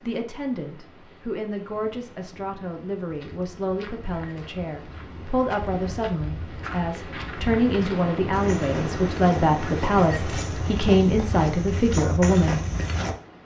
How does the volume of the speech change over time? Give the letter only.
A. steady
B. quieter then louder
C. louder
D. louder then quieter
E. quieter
C.